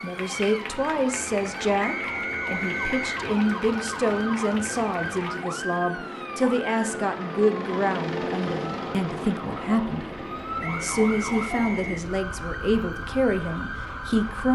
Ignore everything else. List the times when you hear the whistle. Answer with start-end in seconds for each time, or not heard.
1.8-3.2, 10.6-12.1.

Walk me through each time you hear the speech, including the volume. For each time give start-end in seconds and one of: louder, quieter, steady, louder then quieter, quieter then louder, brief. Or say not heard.
0.0-14.4 steady.